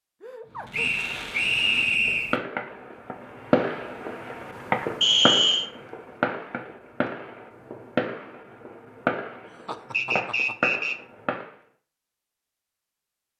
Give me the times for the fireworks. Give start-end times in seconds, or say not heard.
0.6-11.5.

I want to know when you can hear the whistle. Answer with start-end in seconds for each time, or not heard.
0.7-2.4, 5.0-5.7, 9.9-10.9.